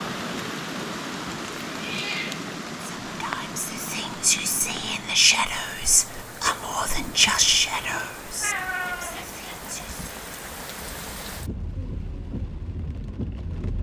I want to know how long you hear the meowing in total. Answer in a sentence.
You can hear the meowing for 3 seconds altogether.